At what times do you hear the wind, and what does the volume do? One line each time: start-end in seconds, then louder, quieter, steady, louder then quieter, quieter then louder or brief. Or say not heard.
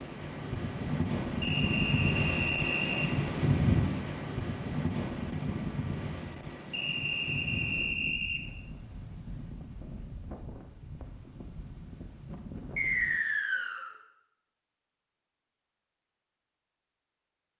0.0-13.2 quieter.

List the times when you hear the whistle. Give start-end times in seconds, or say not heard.
1.4-3.1, 6.7-8.4, 12.8-13.9.